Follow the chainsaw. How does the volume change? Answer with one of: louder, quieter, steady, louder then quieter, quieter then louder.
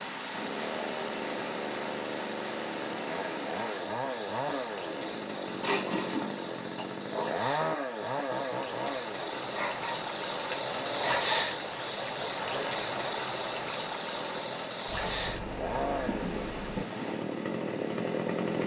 quieter then louder.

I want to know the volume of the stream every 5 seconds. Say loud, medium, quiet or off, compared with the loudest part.
medium, medium, loud, medium.